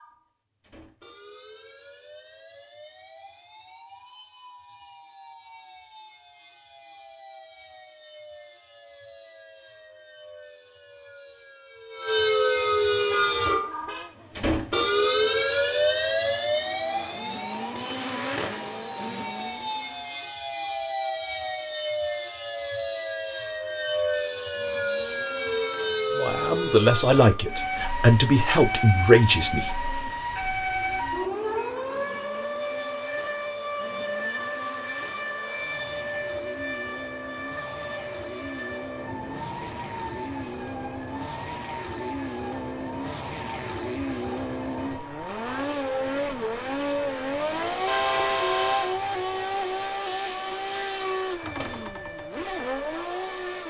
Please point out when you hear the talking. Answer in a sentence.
You can hear the talking from 26.1 to 29.8 s.